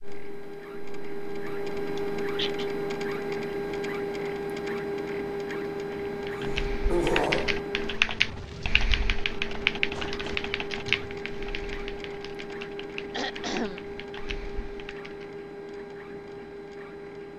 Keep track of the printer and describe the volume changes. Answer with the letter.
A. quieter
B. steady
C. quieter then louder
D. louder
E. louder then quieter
A.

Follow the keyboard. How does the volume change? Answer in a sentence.
The volume of the keyboard goes down.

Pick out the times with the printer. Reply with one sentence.
The printer can be heard from 0.0 to 17.3 s.